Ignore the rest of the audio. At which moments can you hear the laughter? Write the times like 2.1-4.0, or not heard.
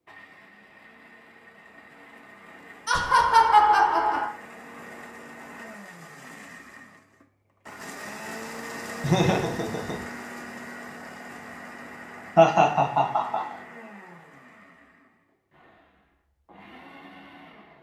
2.9-4.3, 9.0-10.0, 12.3-13.6.